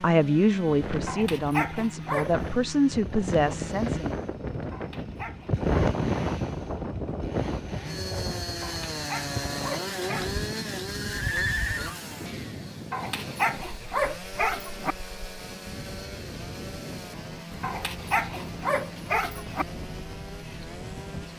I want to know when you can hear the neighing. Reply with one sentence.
You can hear the neighing from 10.2 to 11.9 s.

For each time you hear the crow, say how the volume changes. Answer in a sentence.
The crow can't be heard in this clip.